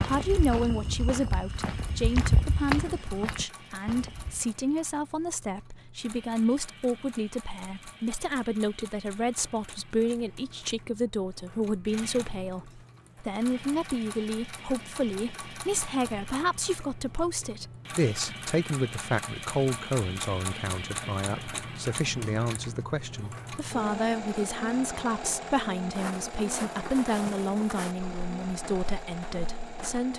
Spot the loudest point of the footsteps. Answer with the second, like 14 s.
2 s.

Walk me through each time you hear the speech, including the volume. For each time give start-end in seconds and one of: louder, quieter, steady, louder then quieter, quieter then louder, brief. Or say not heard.
0.0-30.1 steady.